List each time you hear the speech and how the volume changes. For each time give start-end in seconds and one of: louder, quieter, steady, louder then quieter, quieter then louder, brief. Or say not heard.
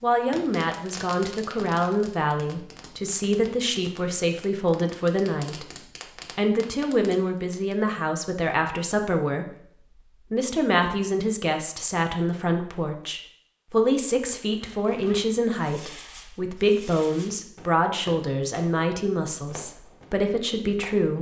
0.0-21.1 steady.